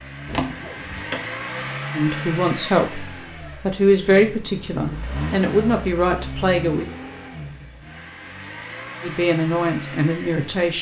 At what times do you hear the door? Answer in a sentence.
The door can be heard from 0.2 to 1.3 s.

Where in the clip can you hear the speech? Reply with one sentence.
The speech can be heard from 1.9 to 6.8 s and from 9.0 to 10.7 s.